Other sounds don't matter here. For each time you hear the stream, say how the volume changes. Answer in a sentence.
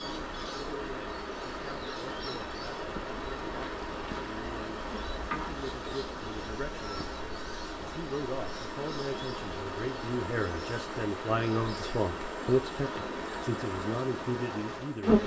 You can hear the stream from 0.0 to 15.2 s, at a steady volume.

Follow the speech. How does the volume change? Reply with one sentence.
The volume of the speech goes up.